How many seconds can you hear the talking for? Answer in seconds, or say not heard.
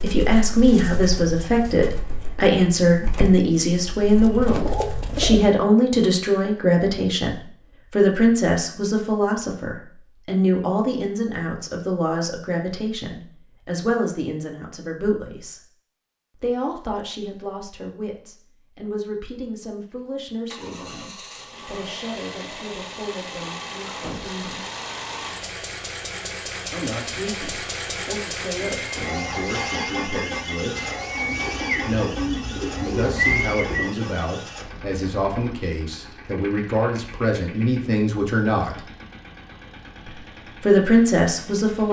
37 s.